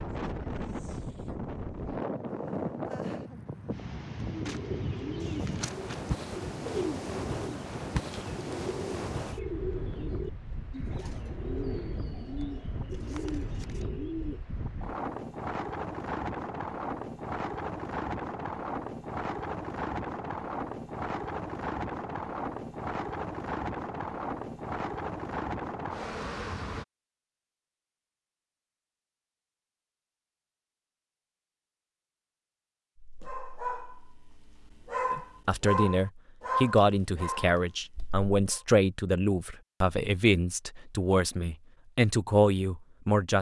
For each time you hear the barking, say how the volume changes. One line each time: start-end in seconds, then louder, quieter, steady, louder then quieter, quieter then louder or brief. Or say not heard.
33.0-38.6 louder then quieter.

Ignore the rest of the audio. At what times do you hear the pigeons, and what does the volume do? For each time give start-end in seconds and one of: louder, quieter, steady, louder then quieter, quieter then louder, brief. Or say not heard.
4.3-14.4 steady.